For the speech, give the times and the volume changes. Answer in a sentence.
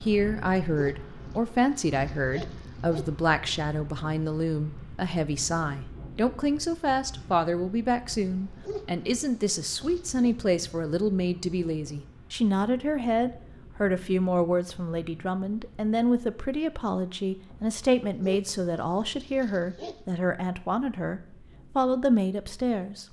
You can hear the speech from 0.0 to 23.0 s, at a steady volume.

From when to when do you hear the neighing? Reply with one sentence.
You can't hear the neighing here.